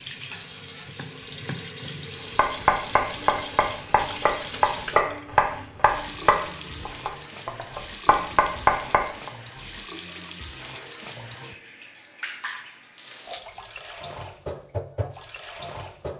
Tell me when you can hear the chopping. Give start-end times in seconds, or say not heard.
2.4-9.3.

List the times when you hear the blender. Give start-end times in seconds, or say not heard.
not heard.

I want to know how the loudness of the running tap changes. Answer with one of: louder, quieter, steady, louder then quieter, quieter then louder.
steady.